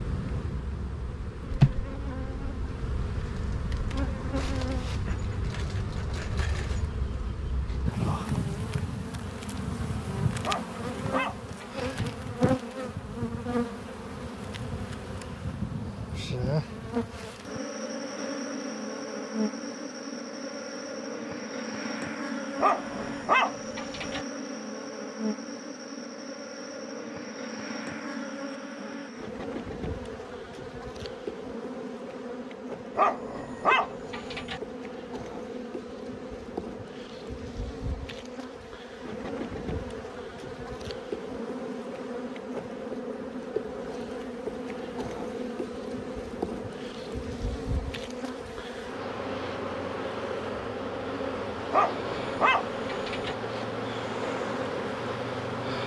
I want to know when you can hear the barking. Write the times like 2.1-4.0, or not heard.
10.4-11.8, 22.6-24.2, 33.0-34.6, 51.7-53.4.